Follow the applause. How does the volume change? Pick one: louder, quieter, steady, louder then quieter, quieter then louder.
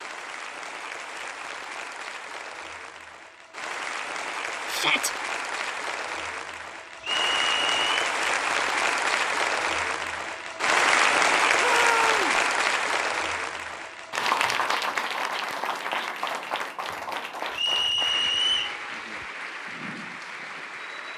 louder then quieter.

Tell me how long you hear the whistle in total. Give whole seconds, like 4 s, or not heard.
2 s.